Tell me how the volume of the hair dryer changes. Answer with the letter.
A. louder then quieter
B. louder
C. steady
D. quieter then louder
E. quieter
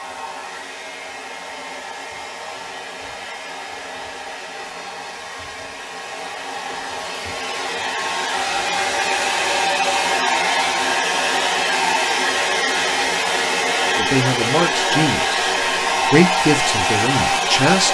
B.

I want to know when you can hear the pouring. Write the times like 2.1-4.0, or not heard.
not heard.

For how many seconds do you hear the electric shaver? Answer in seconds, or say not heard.
not heard.